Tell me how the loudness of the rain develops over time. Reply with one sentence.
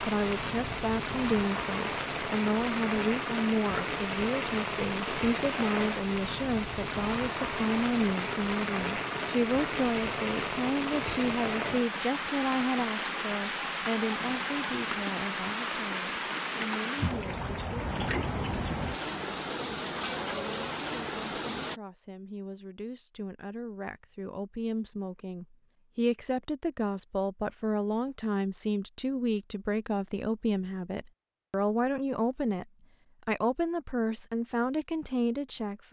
The loudness of the rain stays about the same.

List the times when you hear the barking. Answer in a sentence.
You can't hear the barking here.